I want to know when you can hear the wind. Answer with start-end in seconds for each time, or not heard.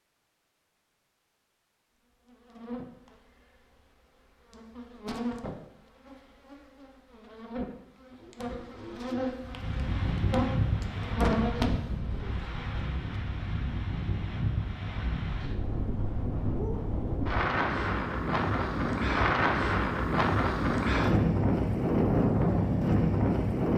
9.4-23.7.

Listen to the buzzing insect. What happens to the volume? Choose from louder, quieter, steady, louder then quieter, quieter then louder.
louder.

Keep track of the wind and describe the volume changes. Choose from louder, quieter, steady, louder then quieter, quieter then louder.
louder.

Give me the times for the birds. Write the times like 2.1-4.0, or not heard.
not heard.